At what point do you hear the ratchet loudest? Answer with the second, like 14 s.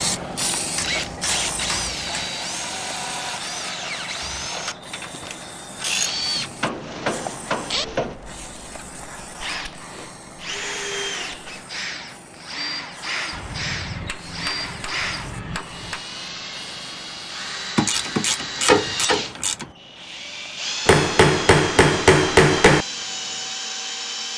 19 s.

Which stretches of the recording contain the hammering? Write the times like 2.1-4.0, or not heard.
0.8-2.2, 6.3-8.2, 13.3-16.0, 20.9-22.9.